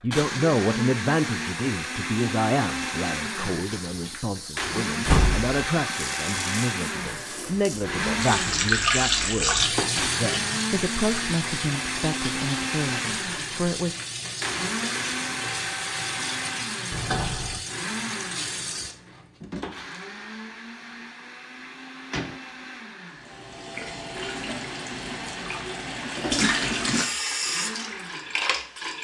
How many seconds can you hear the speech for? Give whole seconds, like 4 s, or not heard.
14 s.